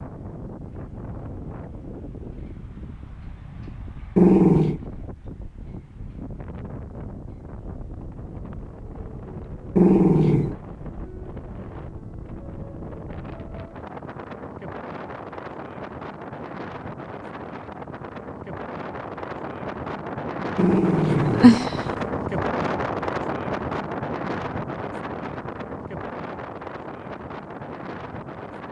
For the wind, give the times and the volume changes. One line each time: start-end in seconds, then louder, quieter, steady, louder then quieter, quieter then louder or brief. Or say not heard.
0.0-28.6 louder.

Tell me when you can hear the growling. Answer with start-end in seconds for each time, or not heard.
4.2-4.8, 9.8-10.6, 20.6-21.7.